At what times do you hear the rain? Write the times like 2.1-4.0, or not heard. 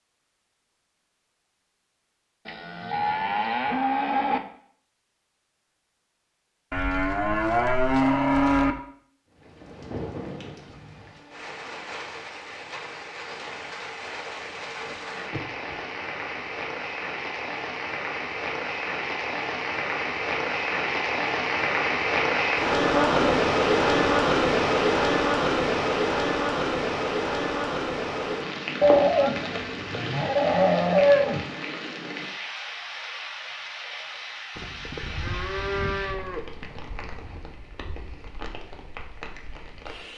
9.3-40.1.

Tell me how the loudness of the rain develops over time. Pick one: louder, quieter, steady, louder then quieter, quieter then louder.
louder then quieter.